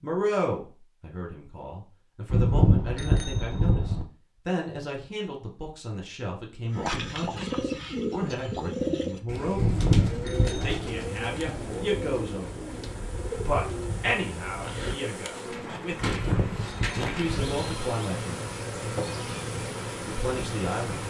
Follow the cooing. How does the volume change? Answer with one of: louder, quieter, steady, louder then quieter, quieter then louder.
quieter.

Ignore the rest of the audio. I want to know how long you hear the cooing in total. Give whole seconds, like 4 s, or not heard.
11 s.